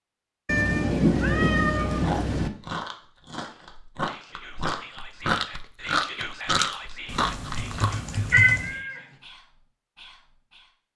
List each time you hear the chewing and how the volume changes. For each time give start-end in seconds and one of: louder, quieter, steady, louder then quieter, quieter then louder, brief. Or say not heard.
1.9-8.0 louder.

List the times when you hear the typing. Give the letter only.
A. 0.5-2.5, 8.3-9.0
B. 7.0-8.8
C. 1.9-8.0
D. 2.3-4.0
B.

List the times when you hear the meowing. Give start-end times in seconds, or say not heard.
0.5-2.5, 8.3-9.0.